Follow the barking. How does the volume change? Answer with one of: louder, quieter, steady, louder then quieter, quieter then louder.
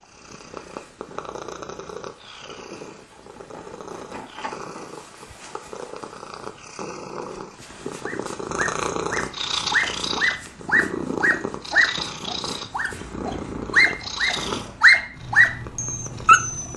louder.